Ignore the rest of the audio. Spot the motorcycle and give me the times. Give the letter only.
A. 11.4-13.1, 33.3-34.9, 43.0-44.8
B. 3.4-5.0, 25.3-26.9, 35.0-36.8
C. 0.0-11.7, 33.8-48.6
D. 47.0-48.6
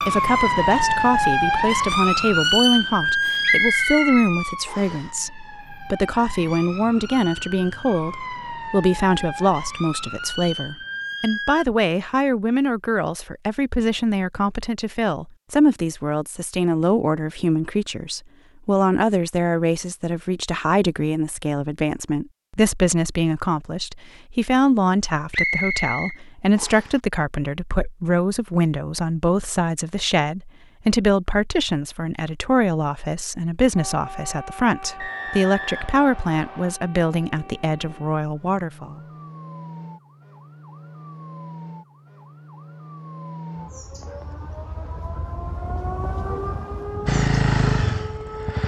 D.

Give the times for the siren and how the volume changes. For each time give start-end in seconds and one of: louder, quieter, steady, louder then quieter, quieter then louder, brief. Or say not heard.
0.0-11.7 quieter then louder
33.8-48.6 louder.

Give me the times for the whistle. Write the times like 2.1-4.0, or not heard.
3.4-5.0, 25.3-26.9, 35.0-36.8.